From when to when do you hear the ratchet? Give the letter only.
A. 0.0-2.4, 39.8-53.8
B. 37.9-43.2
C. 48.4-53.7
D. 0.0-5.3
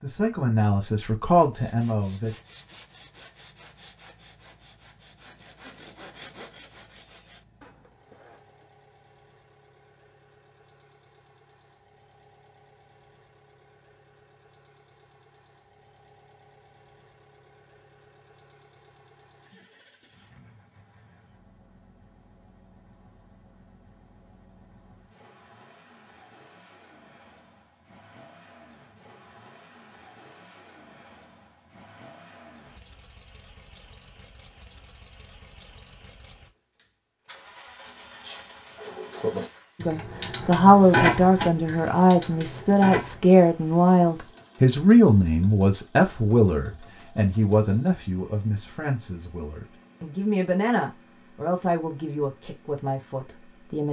B.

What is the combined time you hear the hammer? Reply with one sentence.
You can't hear the hammer here.